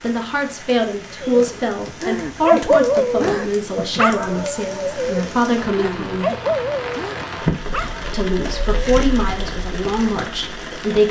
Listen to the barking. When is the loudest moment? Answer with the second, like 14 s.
3 s.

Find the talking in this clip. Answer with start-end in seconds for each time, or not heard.
0.0-6.3, 8.1-11.0.